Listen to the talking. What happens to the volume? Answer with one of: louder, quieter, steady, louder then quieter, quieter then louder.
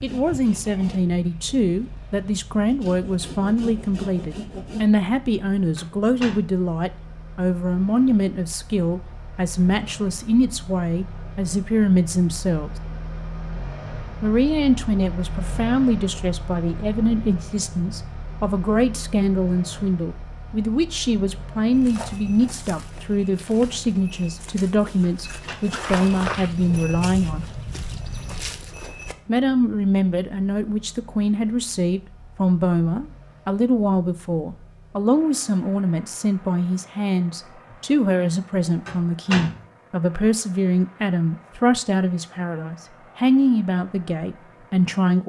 steady.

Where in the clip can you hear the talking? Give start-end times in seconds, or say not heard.
0.0-12.7, 14.2-27.4, 29.2-45.2.